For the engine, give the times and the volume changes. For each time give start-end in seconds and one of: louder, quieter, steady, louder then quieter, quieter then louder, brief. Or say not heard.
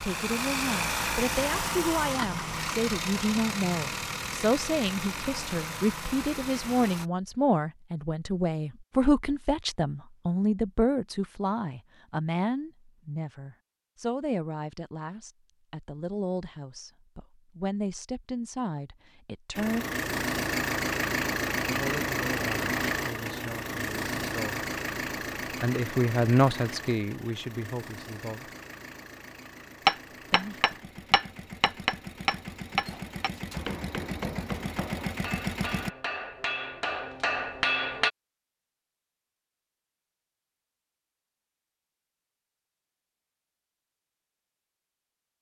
0.0-7.1 quieter
19.6-35.9 quieter then louder.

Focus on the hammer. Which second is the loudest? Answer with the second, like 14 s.
30 s.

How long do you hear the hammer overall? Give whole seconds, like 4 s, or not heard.
8 s.